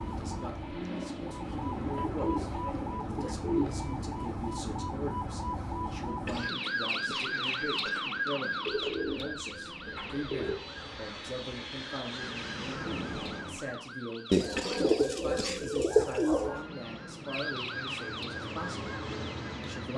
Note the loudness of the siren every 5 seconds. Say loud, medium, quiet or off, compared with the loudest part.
loud, loud, medium, medium.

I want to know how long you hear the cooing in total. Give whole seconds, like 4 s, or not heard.
7 s.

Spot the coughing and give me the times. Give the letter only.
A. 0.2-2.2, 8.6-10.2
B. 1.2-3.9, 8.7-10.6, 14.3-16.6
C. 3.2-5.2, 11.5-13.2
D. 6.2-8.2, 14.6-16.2
D.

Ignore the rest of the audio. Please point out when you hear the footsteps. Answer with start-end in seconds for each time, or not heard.
not heard.